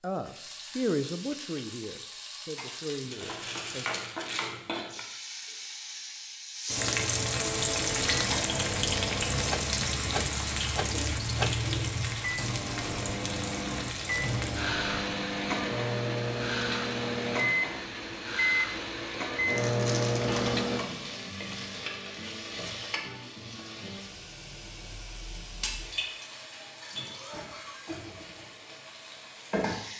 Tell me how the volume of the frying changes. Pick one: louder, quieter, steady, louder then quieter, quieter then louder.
louder then quieter.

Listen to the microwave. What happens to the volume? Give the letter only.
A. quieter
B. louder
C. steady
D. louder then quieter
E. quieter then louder
B.